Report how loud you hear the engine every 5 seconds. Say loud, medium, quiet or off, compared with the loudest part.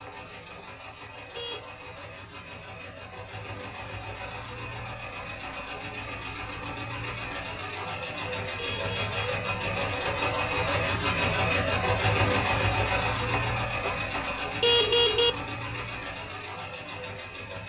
quiet, medium, loud, medium.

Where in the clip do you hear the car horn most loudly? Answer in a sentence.
The volume of the car horn peaks at 15 seconds.